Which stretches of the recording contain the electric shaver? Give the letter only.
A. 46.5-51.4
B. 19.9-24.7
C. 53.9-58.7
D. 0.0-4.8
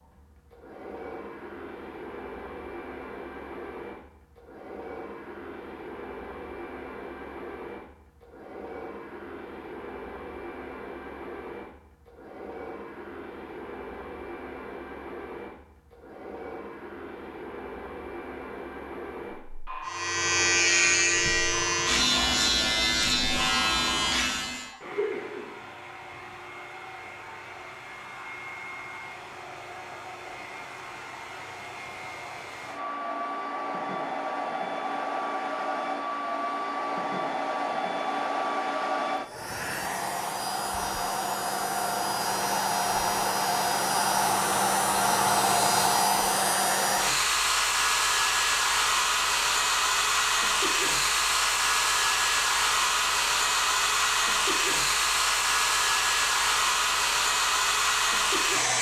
B.